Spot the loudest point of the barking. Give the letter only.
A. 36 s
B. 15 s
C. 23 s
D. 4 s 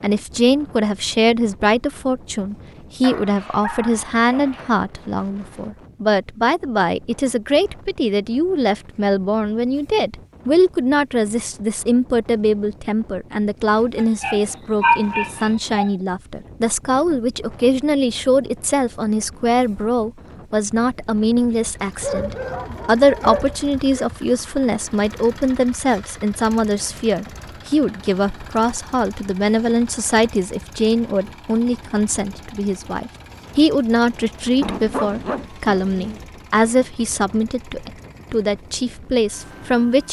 B.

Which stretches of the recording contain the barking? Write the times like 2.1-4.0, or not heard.
3.0-4.7, 13.9-15.9, 22.0-24.1, 34.6-36.2.